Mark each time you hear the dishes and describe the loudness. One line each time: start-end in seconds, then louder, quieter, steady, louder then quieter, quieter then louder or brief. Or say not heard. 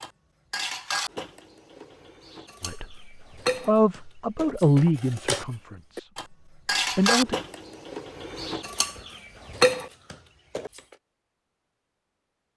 0.0-10.9 louder.